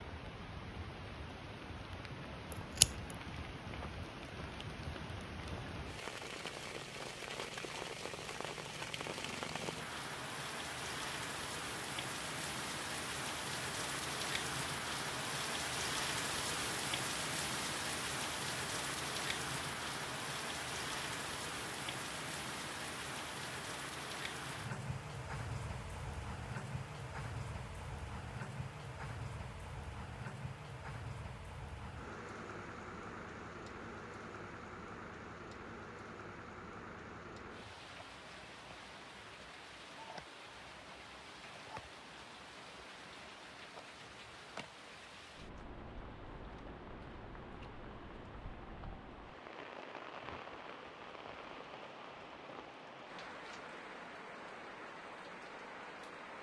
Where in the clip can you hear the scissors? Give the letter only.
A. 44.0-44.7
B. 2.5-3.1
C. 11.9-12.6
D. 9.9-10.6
B.